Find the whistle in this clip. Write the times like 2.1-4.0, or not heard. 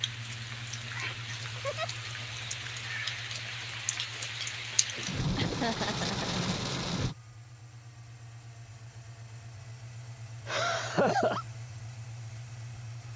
not heard.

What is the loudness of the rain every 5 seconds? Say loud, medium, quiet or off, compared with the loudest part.
medium, loud, off.